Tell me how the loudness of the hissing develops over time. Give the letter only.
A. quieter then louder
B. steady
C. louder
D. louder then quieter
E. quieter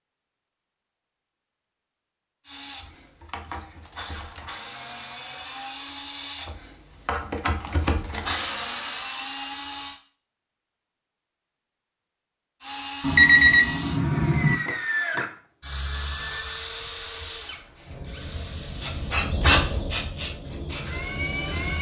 D.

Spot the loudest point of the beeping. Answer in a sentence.
The volume of the beeping peaks at 13 seconds.